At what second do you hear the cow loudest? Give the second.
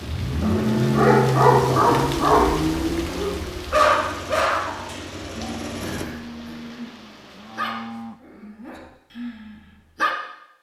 1 s.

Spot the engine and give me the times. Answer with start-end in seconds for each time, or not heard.
0.0-6.0.